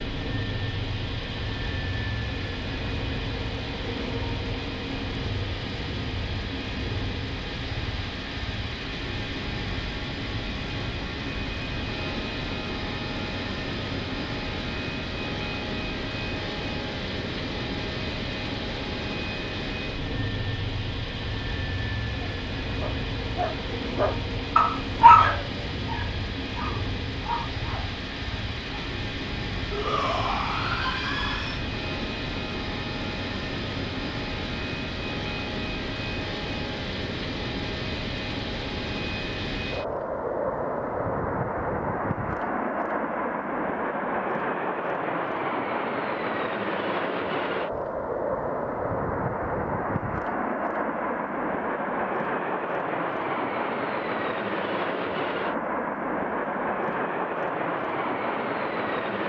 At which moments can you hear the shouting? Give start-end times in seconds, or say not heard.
29.7-31.6.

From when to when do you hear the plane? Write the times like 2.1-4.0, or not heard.
0.0-59.2.